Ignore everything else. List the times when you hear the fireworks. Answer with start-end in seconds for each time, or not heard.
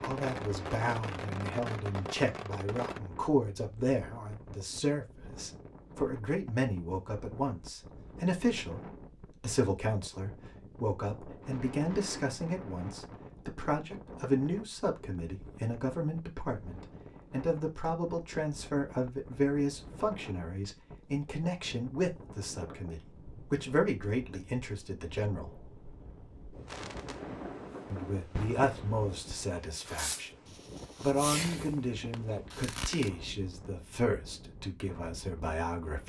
0.0-3.0, 26.6-33.1.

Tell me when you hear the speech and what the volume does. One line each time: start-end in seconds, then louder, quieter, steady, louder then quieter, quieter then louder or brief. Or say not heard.
0.0-25.5 steady
27.9-36.0 quieter.